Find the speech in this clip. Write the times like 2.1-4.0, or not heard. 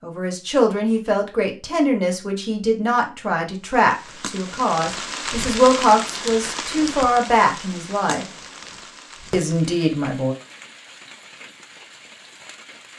0.0-8.2, 9.3-10.3.